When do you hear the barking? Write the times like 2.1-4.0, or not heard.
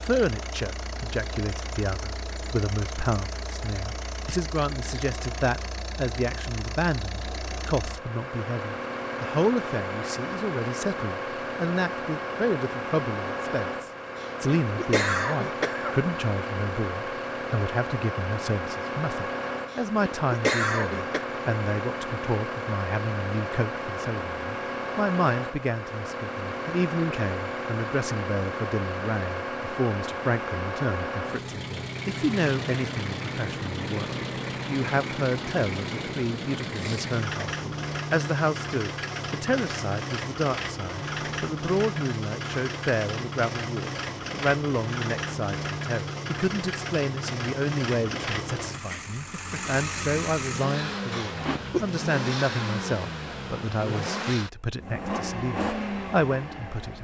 not heard.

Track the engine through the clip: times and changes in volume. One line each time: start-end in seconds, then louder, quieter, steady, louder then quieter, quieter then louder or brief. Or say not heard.
0.0-56.9 steady.